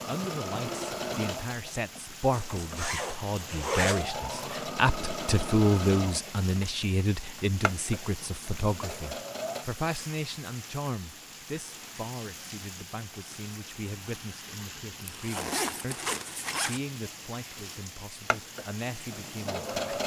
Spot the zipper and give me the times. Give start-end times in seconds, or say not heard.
2.3-4.0, 15.1-16.8.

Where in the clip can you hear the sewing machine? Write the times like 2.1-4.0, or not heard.
0.0-9.7, 18.2-20.0.